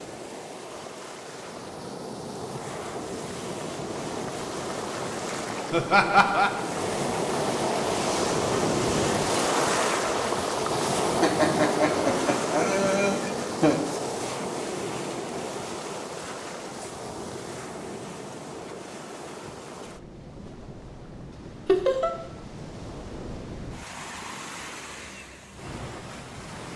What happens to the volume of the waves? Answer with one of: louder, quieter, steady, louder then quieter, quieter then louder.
louder then quieter.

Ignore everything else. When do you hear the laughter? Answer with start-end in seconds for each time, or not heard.
5.7-6.5, 11.2-13.9, 21.6-22.1.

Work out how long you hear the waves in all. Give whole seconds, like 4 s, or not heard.
27 s.